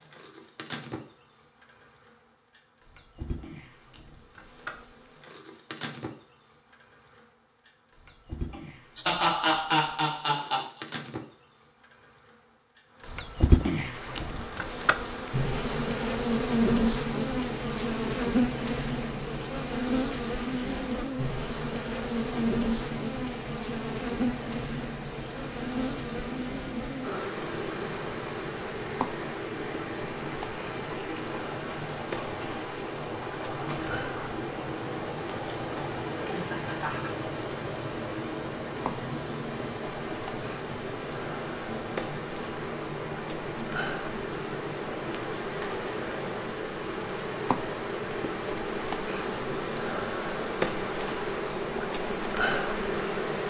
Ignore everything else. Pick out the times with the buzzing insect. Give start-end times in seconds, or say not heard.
0.0-53.4.